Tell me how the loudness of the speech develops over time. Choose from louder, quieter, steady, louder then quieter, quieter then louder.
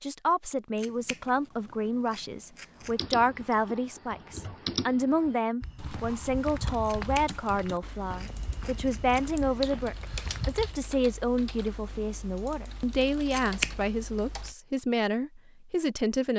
steady.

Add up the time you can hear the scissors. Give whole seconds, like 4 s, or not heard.
5 s.